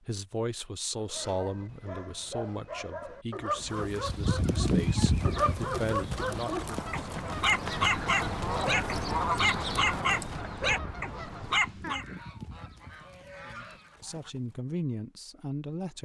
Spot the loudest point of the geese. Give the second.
9 s.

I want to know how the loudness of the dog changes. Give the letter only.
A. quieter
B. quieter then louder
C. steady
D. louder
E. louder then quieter
D.